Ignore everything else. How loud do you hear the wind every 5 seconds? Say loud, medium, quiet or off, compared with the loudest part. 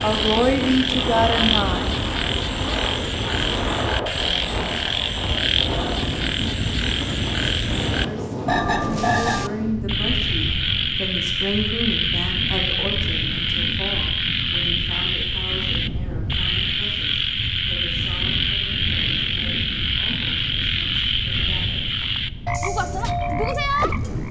loud, loud, medium, medium, medium.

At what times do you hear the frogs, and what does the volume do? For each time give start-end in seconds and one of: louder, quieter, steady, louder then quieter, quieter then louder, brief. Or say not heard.
0.0-24.2 steady.